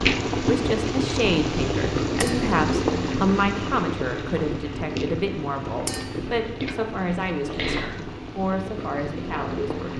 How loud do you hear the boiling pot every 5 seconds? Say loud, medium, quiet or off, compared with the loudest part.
loud, medium.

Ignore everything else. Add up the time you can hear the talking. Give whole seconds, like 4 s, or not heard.
10 s.